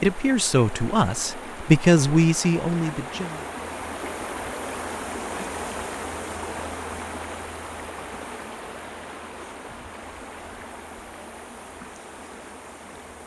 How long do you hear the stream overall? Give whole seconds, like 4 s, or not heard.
13 s.